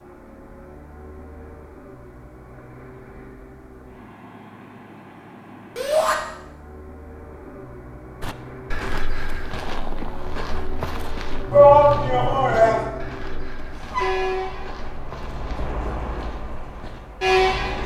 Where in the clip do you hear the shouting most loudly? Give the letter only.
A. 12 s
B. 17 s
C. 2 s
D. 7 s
A.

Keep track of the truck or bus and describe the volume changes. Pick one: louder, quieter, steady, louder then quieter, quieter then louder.
louder.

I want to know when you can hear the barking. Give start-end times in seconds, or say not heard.
not heard.